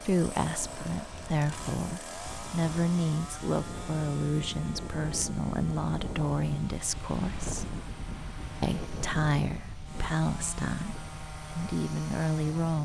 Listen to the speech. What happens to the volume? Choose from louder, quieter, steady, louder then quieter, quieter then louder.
steady.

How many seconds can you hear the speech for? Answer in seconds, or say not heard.
12 s.